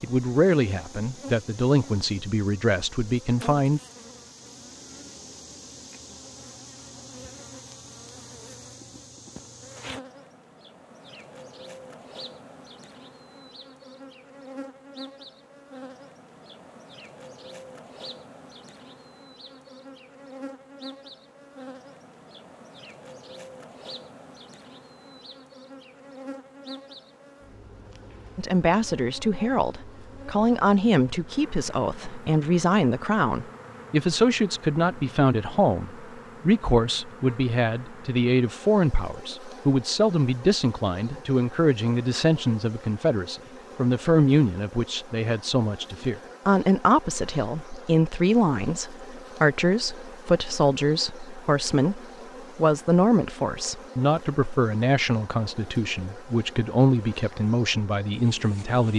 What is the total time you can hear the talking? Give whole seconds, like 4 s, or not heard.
34 s.